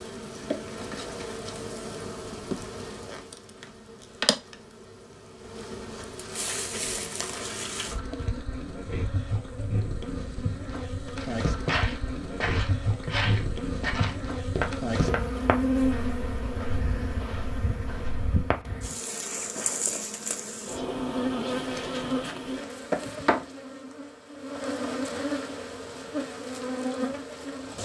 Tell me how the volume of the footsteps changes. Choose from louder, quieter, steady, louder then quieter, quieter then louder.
quieter.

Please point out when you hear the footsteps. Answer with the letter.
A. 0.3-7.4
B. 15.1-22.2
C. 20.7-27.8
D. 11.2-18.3
D.